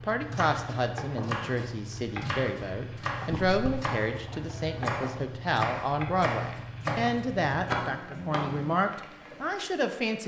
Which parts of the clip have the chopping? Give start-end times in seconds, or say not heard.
0.2-8.8.